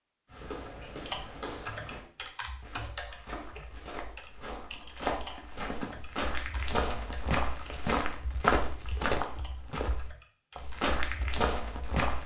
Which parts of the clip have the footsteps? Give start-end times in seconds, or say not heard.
0.3-12.2.